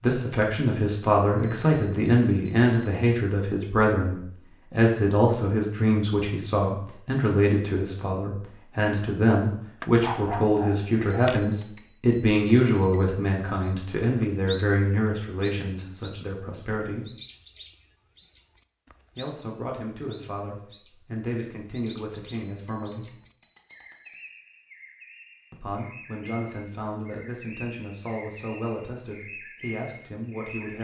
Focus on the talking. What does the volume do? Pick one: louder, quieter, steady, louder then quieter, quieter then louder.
quieter.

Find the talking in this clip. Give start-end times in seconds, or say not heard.
0.0-17.1, 19.1-23.1, 25.5-30.7.